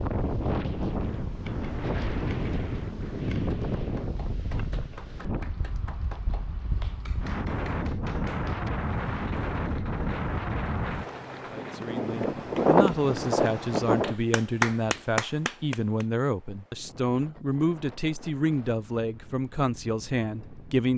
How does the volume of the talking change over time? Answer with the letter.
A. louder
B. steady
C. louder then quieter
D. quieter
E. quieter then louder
B.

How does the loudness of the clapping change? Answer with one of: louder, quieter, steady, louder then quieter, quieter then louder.
louder.